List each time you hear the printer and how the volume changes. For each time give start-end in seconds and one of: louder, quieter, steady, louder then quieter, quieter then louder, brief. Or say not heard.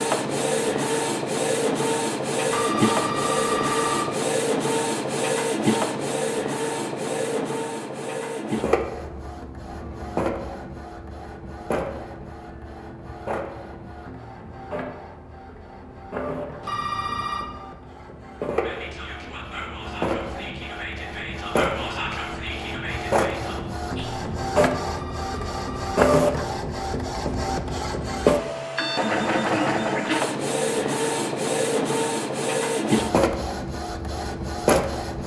0.0-35.2 quieter then louder.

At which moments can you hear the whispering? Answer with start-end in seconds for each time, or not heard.
18.6-24.2.